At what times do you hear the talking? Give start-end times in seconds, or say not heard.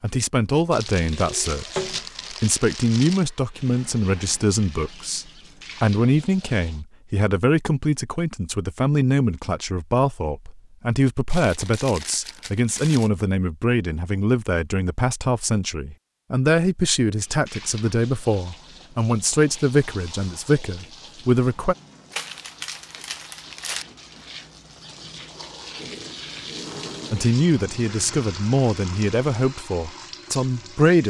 0.0-21.8, 27.1-31.0.